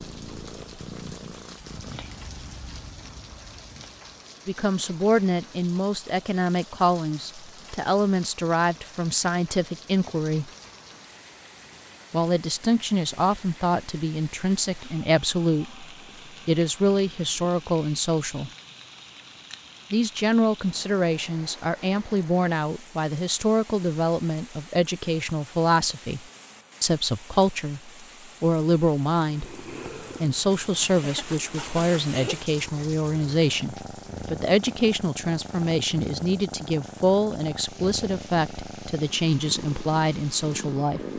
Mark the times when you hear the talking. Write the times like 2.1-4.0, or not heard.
4.5-10.5, 12.1-15.8, 16.4-18.5, 19.9-26.2, 26.8-41.1.